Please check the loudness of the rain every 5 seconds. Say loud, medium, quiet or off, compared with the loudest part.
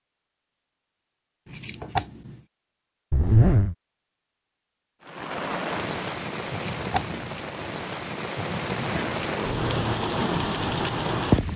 off, medium, loud.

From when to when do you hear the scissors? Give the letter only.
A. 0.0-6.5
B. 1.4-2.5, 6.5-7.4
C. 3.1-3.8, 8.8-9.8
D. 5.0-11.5
B.